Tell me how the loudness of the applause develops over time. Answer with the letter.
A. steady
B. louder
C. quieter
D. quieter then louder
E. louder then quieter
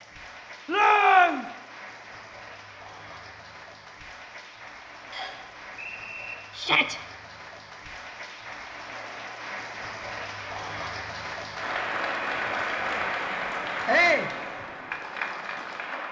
B.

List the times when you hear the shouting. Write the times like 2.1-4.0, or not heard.
0.7-1.4, 6.5-7.0, 13.8-14.3.